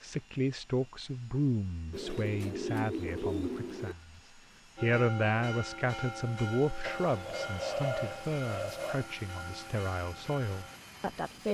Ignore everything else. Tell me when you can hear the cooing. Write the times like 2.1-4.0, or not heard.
1.9-4.0, 6.8-9.1.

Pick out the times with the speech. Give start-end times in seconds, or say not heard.
0.0-11.4.